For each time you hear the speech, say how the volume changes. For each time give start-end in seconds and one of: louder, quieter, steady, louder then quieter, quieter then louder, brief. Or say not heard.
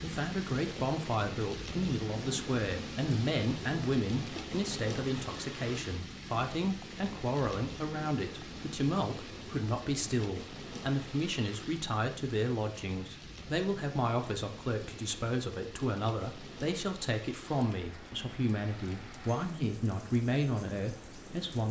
0.0-21.6 steady.